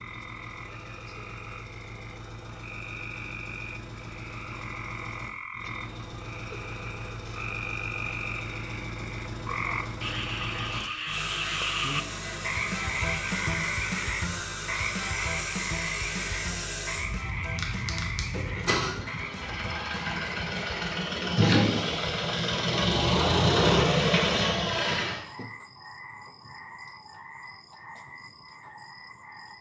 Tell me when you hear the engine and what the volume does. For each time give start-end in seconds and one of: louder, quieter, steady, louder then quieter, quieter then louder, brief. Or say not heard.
0.0-25.2 louder.